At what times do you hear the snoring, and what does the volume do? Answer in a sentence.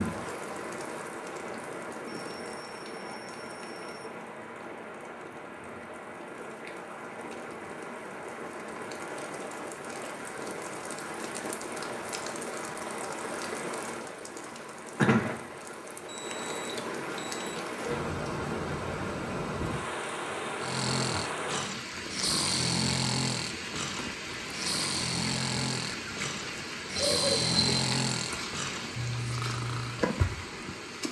The snoring can be heard from 20.6 to 30.1 s, at a steady volume.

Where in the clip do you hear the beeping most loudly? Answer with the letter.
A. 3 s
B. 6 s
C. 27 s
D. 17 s
C.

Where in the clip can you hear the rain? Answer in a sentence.
You can hear the rain from 0.0 to 31.0 s.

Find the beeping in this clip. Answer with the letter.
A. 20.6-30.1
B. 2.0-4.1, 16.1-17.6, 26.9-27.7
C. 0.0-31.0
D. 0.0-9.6
B.